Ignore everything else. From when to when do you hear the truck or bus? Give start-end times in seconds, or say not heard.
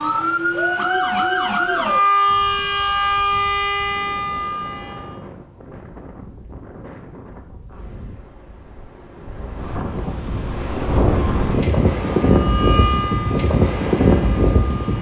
not heard.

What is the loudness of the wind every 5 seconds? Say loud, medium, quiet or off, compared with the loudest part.
quiet, quiet, loud.